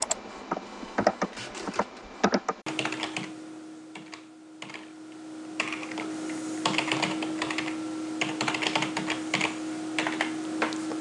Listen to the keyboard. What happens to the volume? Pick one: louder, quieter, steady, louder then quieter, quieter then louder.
quieter then louder.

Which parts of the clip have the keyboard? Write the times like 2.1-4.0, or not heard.
0.0-10.9.